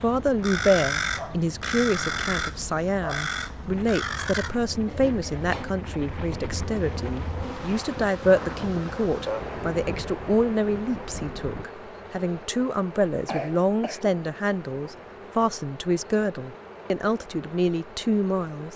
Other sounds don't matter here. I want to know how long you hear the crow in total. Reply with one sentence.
You can hear the crow for 5 seconds altogether.